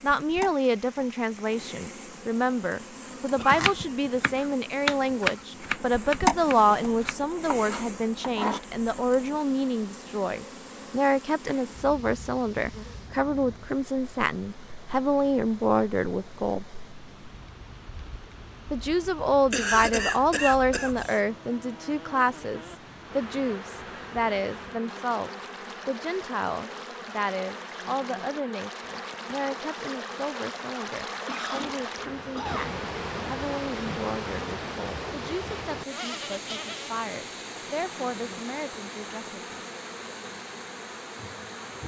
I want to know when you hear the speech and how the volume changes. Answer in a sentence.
The speech can be heard from 0.0 to 16.6 s, at a steady volume; and from 18.7 to 39.6 s, getting quieter.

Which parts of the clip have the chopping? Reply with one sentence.
You can hear the chopping from 3.4 to 8.6 s.